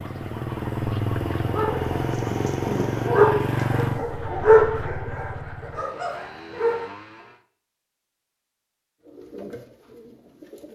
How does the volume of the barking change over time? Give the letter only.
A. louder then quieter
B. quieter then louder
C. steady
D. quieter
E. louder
A.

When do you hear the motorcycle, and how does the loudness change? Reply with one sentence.
You can hear the motorcycle from 0.0 to 7.4 s, getting quieter.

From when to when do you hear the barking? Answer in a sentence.
You can hear the barking from 1.4 to 6.9 s.